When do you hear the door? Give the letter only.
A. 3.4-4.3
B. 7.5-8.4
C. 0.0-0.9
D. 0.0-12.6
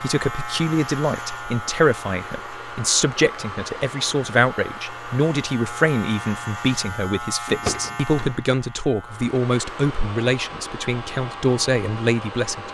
B.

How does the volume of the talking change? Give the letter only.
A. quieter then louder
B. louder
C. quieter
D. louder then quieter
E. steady
E.